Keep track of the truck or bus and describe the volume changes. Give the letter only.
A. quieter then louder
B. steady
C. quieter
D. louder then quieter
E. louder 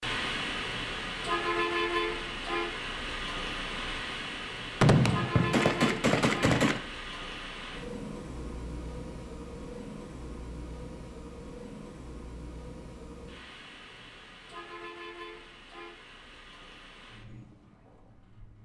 C.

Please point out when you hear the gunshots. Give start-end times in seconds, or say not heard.
4.8-6.8.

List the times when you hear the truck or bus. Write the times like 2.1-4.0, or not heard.
0.0-18.6.